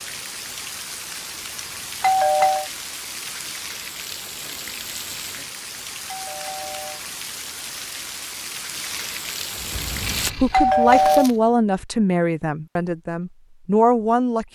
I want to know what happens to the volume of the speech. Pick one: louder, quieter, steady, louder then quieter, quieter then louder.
quieter then louder.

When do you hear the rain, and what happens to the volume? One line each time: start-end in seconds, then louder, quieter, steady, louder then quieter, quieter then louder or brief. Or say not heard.
0.0-10.3 steady.